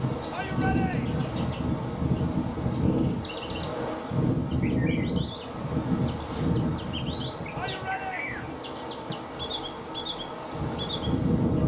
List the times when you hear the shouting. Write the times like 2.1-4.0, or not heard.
0.3-1.2, 7.5-8.4.